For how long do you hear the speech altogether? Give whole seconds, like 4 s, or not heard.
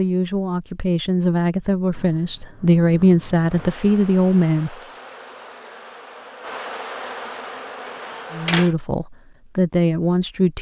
7 s.